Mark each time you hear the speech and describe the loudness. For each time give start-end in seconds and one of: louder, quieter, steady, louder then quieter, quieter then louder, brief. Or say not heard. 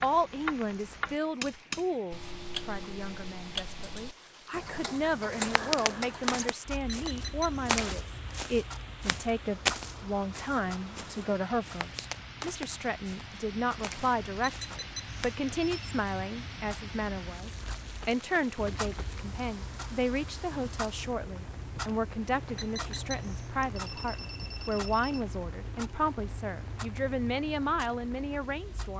0.0-28.9 steady.